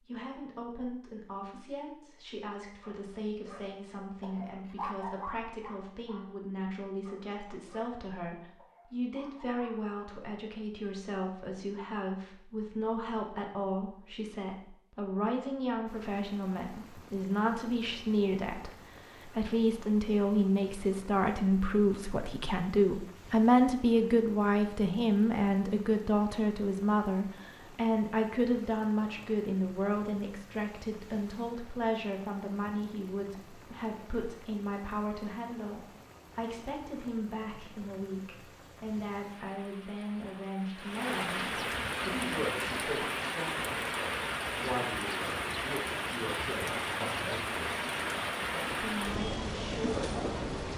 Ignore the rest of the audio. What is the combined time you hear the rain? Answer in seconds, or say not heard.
35 s.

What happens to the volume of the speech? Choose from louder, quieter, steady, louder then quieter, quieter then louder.
louder then quieter.